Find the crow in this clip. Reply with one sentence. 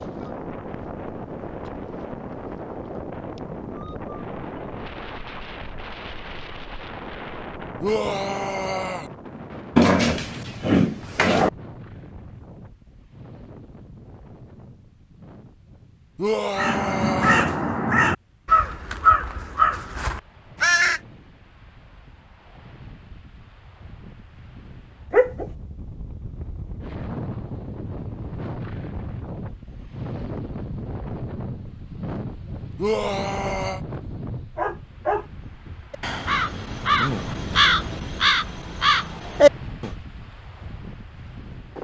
You can hear the crow from 16.6 to 21.0 s and from 35.9 to 40.0 s.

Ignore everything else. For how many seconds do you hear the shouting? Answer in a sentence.
The shouting can be heard for 4 seconds in total.